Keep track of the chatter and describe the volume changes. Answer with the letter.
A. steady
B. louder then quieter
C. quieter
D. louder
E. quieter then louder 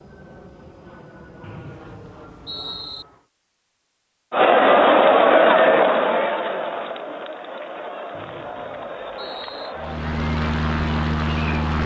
C.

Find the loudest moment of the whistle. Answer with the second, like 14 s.
3 s.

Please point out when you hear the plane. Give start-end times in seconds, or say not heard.
0.0-3.2, 9.8-11.8.